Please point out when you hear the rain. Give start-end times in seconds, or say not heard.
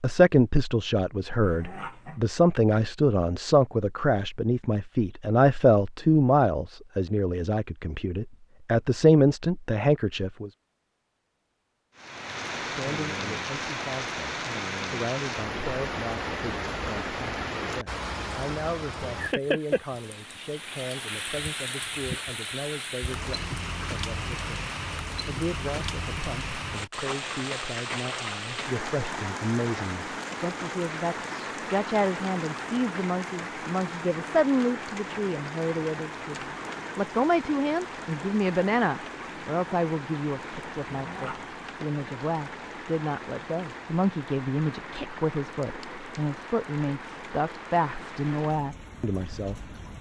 11.9-49.9.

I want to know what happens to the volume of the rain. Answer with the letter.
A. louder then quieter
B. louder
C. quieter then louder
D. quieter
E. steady
D.